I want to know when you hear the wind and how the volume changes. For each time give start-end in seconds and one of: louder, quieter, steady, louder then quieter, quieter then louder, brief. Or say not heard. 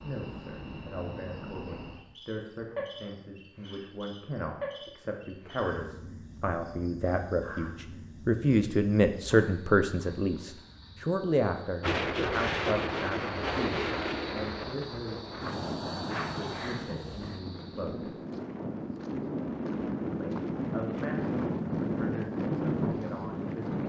11.8-23.8 quieter then louder.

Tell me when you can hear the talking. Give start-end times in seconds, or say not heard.
0.0-18.1, 20.1-23.8.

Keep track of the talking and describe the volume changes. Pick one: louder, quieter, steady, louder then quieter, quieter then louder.
louder then quieter.